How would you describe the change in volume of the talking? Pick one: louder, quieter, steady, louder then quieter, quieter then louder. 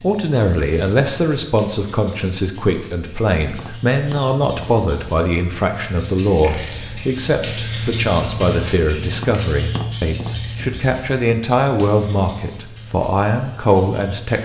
steady.